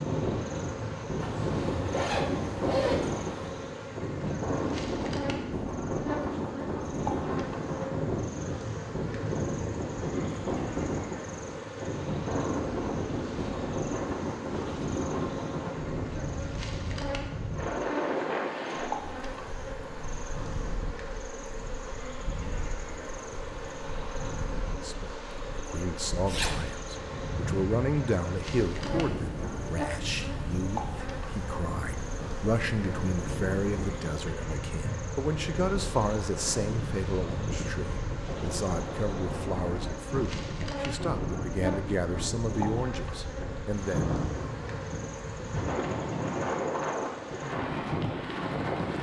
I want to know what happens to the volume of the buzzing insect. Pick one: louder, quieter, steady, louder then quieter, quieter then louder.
steady.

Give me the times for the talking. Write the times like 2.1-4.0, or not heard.
24.8-44.1.